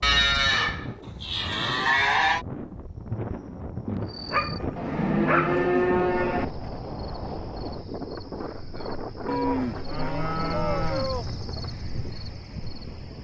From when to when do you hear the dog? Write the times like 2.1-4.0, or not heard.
4.2-5.7.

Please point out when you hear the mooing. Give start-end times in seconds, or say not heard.
0.0-2.5, 4.8-6.5, 9.2-11.2.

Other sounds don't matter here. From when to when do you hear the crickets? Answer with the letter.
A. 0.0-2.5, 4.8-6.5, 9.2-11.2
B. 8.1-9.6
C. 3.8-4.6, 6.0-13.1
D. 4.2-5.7
C.